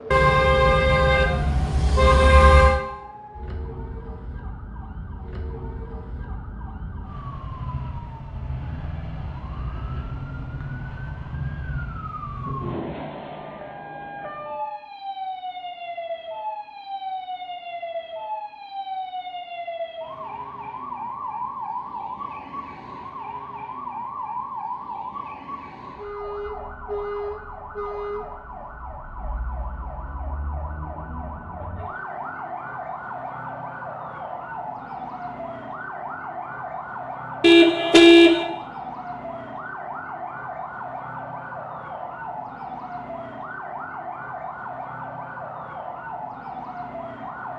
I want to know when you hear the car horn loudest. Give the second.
38 s.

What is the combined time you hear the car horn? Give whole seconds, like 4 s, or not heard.
4 s.